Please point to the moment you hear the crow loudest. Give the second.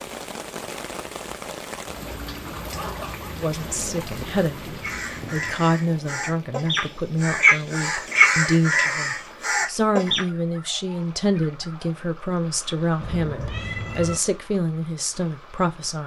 8 s.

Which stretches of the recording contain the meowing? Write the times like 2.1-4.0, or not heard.
13.0-14.2.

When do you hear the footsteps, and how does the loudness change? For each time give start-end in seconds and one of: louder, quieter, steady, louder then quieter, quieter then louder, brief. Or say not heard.
not heard.